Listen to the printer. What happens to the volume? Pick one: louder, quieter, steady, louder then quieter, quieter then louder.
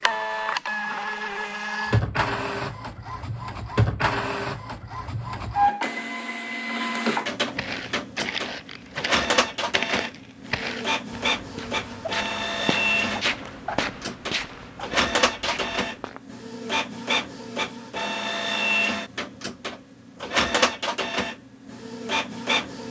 steady.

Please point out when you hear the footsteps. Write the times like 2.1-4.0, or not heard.
7.5-16.2.